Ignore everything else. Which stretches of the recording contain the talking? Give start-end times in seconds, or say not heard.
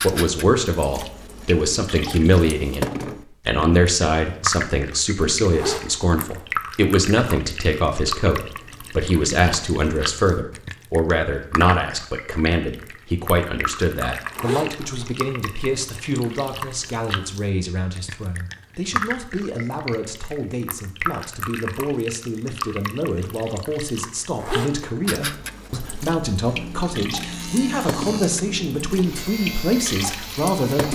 0.0-30.8.